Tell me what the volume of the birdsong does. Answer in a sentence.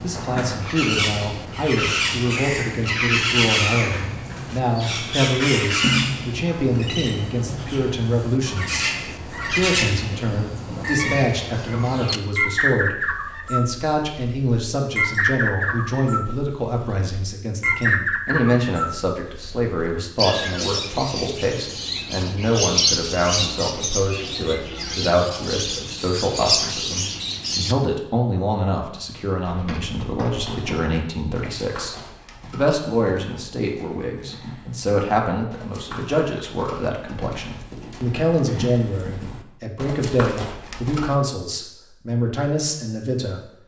The loudness of the birdsong stays about the same.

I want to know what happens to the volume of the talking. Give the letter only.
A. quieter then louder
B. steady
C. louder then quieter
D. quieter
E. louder
B.